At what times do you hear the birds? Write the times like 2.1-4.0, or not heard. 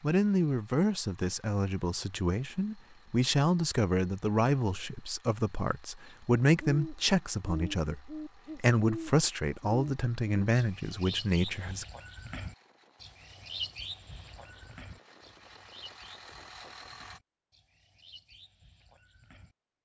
6.0-19.6.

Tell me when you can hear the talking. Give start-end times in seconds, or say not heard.
0.0-11.8.